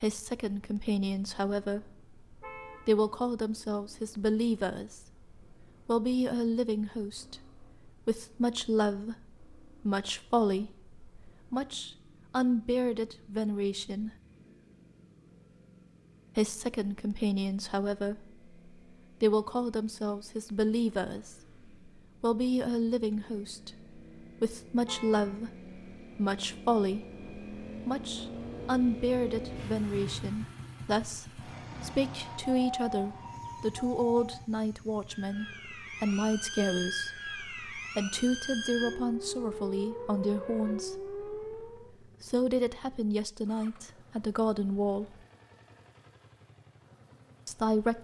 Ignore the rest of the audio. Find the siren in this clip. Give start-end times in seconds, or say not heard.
32.2-42.0.